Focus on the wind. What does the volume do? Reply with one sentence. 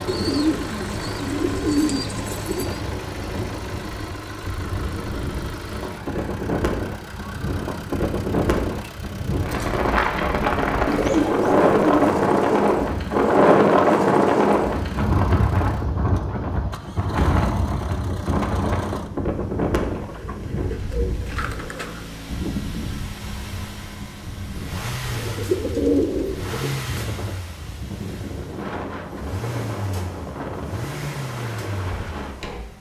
The loudness of the wind goes up, then down.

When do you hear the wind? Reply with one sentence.
The wind can be heard from 0.0 to 32.6 s.